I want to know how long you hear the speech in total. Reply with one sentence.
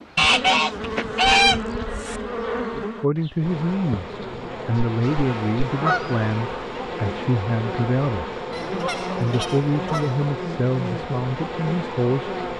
The speech can be heard for 9 seconds in total.